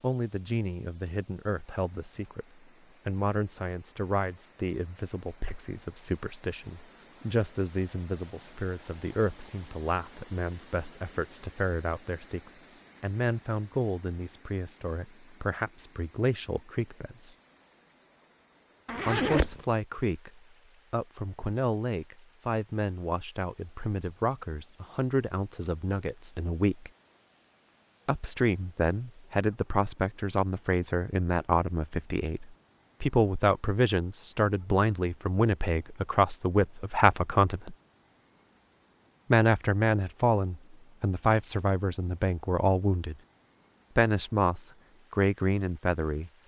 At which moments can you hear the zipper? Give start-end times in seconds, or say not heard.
18.9-19.6.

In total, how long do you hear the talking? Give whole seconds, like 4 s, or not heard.
41 s.